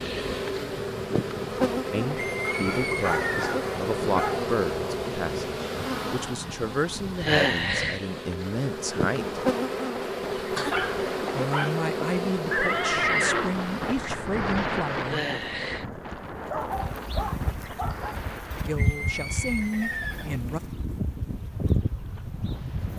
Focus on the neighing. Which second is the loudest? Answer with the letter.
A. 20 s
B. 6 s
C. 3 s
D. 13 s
D.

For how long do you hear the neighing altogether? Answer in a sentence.
The neighing can be heard for 4 seconds in total.